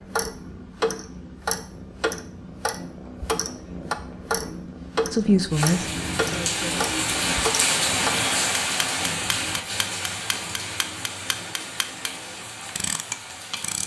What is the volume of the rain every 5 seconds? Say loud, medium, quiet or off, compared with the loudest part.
off, loud, medium.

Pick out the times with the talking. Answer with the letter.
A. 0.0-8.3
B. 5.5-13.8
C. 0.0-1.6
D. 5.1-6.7
D.